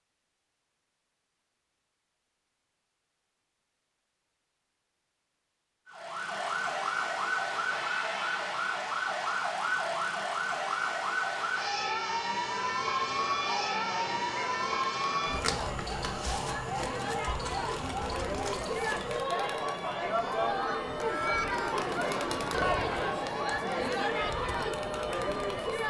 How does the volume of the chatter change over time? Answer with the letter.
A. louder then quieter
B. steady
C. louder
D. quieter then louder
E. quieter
C.